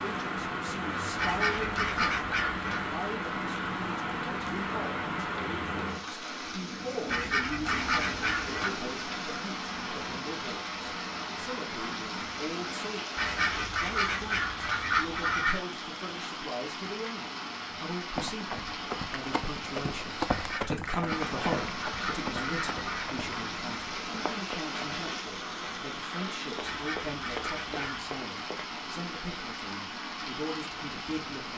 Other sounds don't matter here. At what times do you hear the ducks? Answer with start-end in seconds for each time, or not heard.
1.1-2.9, 7.0-8.7, 13.2-15.6, 20.2-23.1, 26.6-28.1.